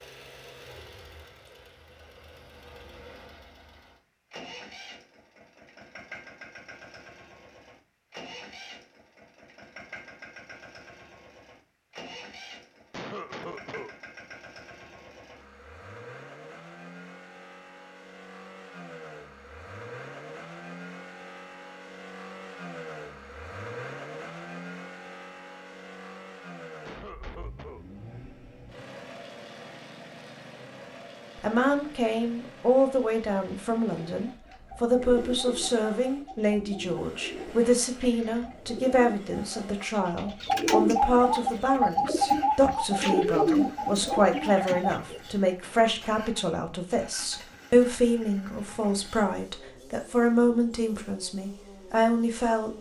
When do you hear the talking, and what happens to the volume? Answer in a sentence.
You can hear the talking from 31.4 to 52.7 s, at a steady volume.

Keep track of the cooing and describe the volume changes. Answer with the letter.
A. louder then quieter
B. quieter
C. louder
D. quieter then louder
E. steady
C.